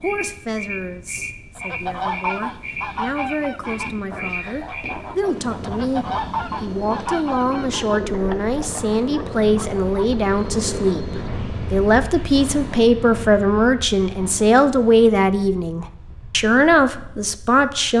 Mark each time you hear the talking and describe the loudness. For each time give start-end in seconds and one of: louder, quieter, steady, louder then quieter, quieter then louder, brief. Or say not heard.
0.0-17.9 louder.